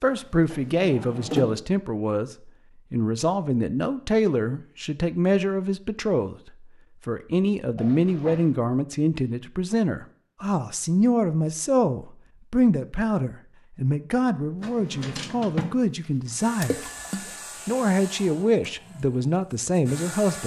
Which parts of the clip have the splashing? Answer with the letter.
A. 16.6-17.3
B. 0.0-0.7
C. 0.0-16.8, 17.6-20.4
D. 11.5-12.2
A.